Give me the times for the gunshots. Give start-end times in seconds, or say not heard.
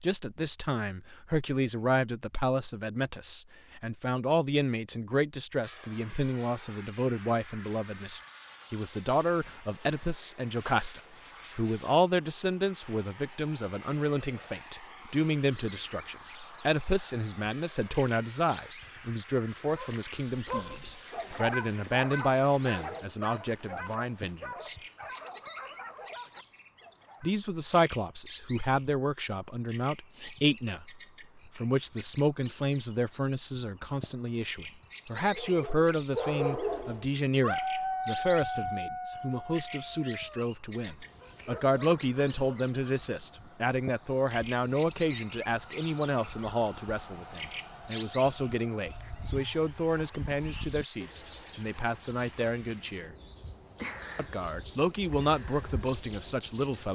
not heard.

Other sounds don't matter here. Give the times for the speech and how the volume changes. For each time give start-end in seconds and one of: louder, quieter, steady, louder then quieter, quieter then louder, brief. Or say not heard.
0.0-24.8 steady
27.2-53.1 steady
54.1-56.9 brief.